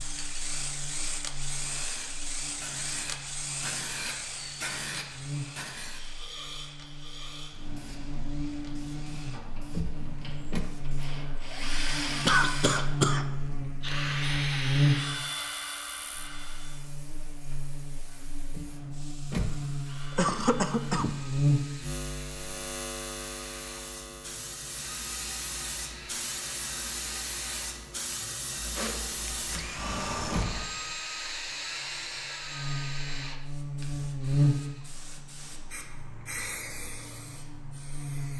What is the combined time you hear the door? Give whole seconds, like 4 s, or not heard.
3 s.